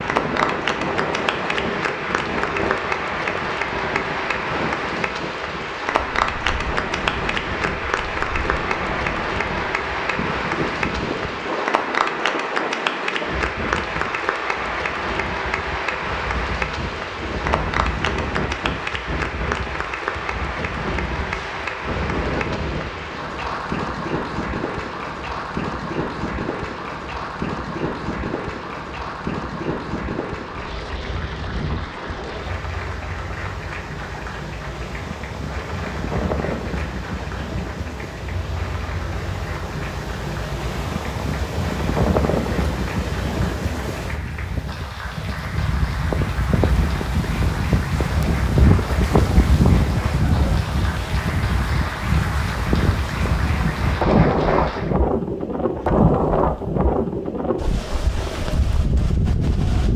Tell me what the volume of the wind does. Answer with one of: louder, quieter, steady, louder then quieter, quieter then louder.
louder.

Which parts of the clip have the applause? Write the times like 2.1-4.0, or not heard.
0.0-55.0.